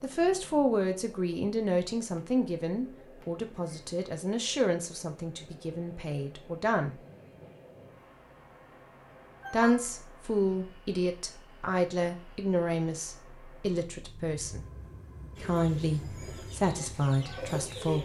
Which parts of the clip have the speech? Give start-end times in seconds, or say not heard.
0.0-7.0, 9.5-14.6, 15.4-17.9.